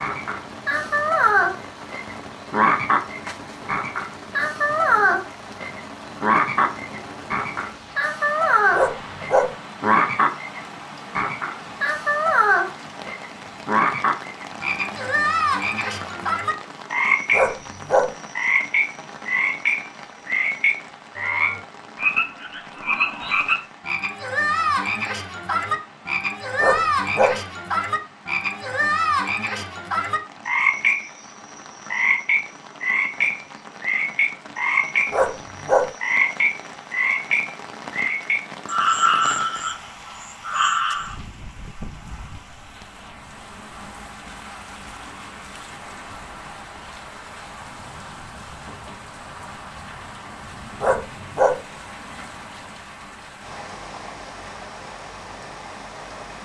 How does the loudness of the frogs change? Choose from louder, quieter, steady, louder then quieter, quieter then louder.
steady.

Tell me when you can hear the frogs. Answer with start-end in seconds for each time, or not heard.
0.0-41.1.